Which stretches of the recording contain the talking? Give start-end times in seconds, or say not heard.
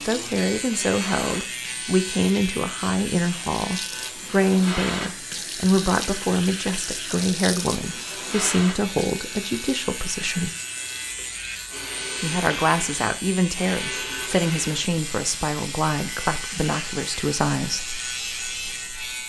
0.1-10.5, 12.2-18.0.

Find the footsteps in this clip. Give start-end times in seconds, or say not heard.
not heard.